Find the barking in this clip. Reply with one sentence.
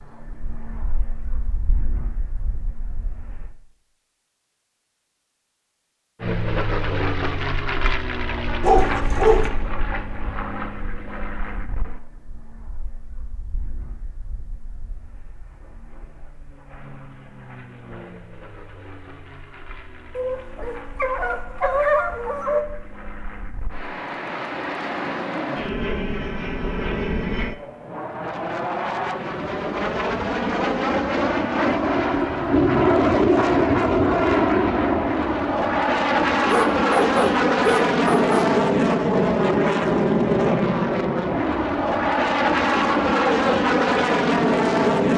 The barking can be heard from 8.6 to 9.5 s, from 20.1 to 22.6 s and from 36.5 to 38.5 s.